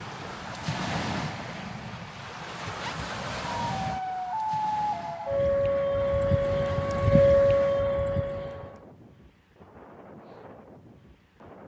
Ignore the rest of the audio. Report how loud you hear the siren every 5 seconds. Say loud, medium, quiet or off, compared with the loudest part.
medium, loud, off.